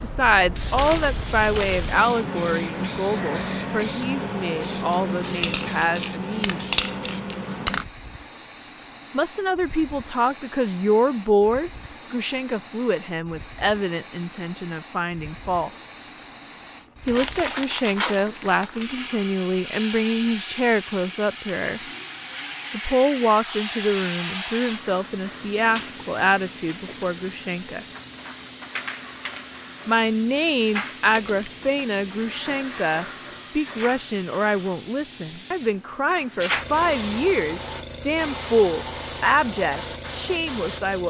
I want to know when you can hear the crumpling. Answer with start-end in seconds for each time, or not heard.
0.8-1.9, 17.1-18.9, 31.1-31.6.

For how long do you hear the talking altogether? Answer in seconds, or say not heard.
34 s.